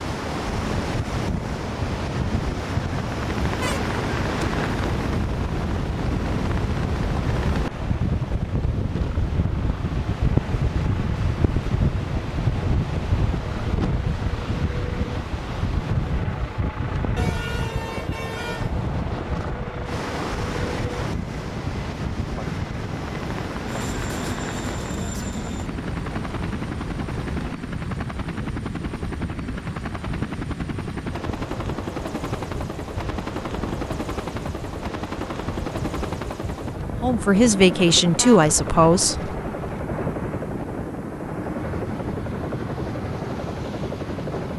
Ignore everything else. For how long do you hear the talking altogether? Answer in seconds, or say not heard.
2 s.